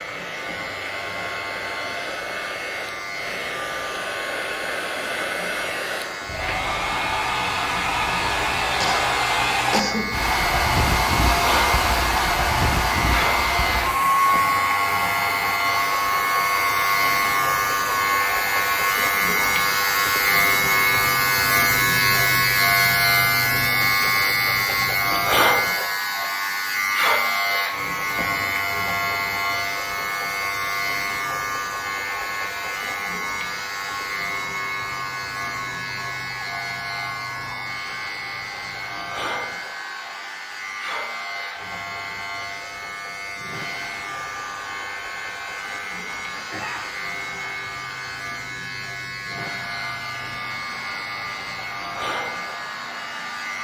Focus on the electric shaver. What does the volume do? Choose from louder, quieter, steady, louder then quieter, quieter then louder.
louder then quieter.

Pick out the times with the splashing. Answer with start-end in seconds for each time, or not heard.
not heard.